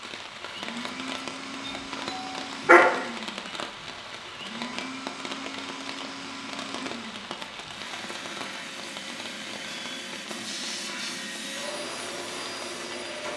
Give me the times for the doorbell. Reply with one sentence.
You can hear the doorbell from 1.6 to 2.9 s.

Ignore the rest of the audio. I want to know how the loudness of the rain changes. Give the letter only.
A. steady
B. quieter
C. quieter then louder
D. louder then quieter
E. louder
B.